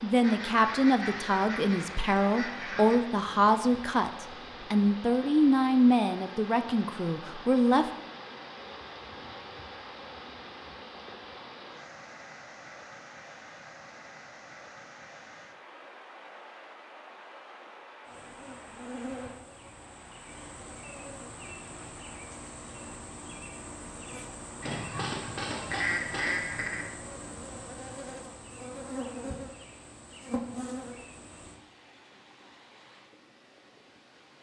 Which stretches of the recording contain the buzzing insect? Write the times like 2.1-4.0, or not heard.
18.1-31.6.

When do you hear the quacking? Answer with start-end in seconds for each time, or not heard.
0.2-3.0, 24.6-26.9.